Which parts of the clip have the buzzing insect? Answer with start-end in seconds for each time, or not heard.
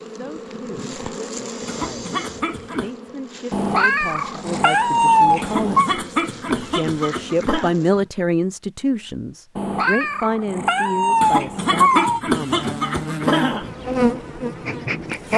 0.0-8.1, 12.4-15.3.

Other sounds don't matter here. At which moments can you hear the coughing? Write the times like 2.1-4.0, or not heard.
1.6-2.9, 5.4-7.8, 11.2-13.7.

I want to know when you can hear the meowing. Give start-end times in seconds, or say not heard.
3.5-5.9, 9.6-12.2.